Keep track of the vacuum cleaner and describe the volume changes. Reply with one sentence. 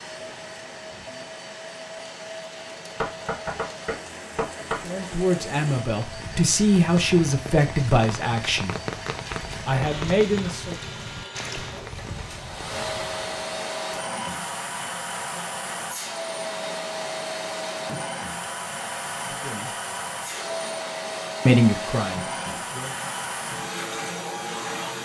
The loudness of the vacuum cleaner goes up.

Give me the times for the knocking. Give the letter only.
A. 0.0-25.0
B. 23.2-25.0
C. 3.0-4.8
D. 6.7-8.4
C.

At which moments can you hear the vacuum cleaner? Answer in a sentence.
The vacuum cleaner can be heard from 0.0 to 25.0 s.